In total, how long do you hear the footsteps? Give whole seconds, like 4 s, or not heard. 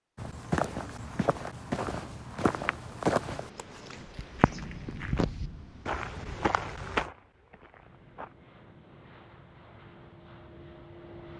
8 s.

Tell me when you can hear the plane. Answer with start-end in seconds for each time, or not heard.
7.8-11.3.